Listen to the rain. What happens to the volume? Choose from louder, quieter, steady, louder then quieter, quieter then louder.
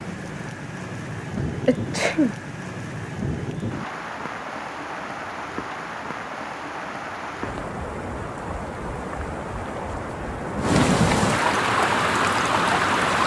louder.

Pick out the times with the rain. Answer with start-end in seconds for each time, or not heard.
0.0-13.2.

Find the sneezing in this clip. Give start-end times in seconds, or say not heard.
1.4-2.4.